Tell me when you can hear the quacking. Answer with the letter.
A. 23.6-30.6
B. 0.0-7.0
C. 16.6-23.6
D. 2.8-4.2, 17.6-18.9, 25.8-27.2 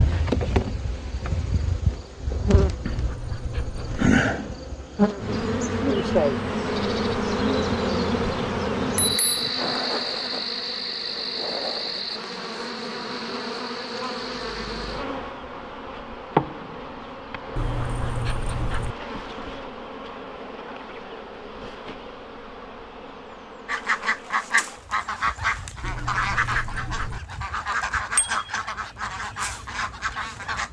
A.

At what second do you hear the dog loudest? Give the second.
18 s.